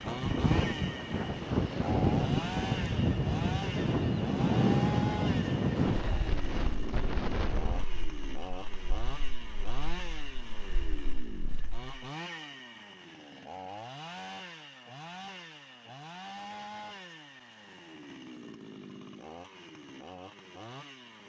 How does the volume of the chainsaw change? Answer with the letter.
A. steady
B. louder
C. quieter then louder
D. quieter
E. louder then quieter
D.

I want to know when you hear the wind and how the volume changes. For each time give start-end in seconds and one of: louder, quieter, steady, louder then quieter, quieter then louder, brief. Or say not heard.
0.0-11.9 quieter.